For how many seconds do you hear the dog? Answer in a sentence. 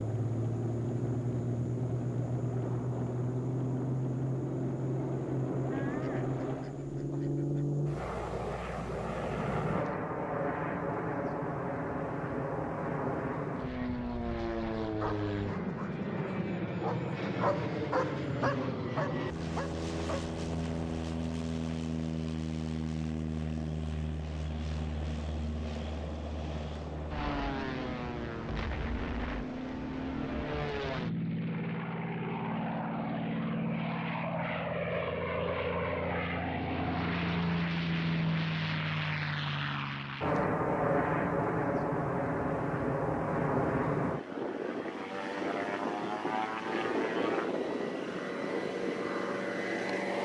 The dog can be heard for 5 seconds in total.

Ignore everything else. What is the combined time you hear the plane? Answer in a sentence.
The plane can be heard for 50 seconds in total.